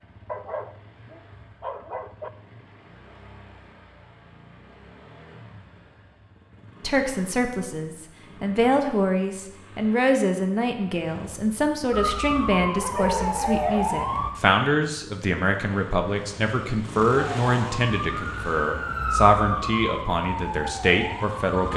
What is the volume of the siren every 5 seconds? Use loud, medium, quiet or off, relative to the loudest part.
off, off, loud, loud, medium.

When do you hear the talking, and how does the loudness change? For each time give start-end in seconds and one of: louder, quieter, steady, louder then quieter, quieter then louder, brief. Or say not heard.
6.8-21.7 steady.